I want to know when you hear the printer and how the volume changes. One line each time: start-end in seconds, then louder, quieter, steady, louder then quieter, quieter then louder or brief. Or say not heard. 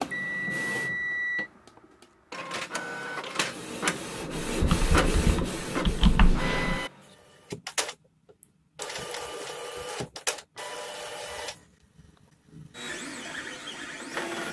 0.0-14.4 louder then quieter.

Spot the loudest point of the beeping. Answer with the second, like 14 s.
1 s.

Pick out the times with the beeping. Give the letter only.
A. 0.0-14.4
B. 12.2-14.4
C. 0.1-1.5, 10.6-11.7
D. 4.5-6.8
C.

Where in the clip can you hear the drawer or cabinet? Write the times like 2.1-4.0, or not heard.
not heard.